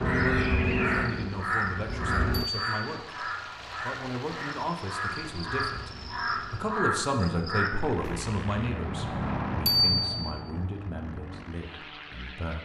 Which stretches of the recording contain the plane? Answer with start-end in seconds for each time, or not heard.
0.0-2.5, 5.2-12.6.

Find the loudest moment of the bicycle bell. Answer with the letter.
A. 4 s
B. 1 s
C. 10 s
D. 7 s
C.